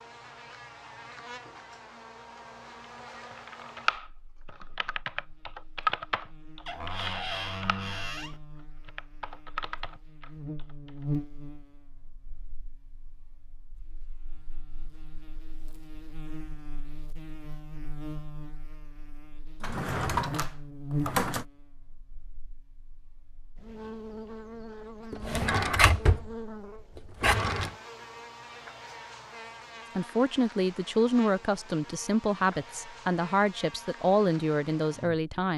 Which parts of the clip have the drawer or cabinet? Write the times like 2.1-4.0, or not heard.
6.7-8.4, 19.6-21.4, 25.1-26.3, 27.2-27.7.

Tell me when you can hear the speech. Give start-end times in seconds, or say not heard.
29.9-35.5.